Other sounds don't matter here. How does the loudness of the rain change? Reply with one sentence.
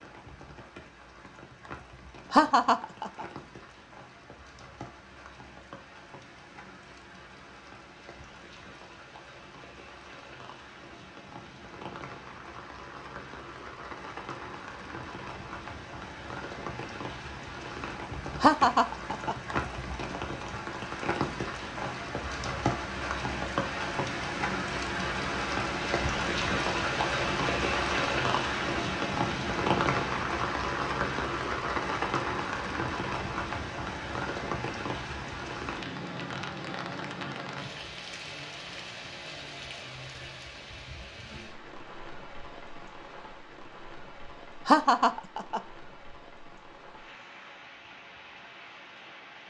The loudness of the rain goes up, then down.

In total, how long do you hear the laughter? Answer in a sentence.
You can hear the laughter for 3 seconds altogether.